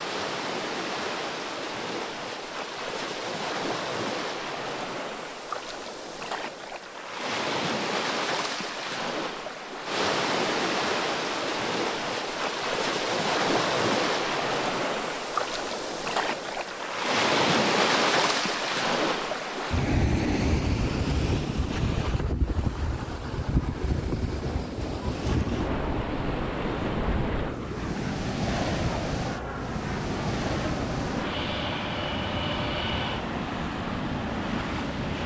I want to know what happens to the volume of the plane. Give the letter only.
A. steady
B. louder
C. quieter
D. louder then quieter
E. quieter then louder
A.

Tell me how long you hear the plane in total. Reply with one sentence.
You can hear the plane for 11 seconds altogether.